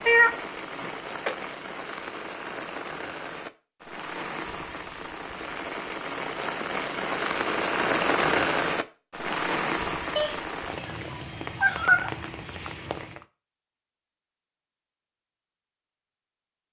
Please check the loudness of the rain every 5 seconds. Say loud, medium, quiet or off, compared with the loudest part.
medium, loud, medium, off.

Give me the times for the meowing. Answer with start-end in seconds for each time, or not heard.
0.1-1.4, 10.2-12.1.